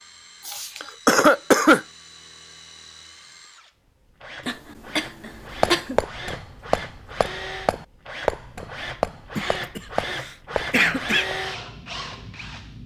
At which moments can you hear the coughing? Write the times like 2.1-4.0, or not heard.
0.5-1.9, 4.5-6.0, 9.3-11.2.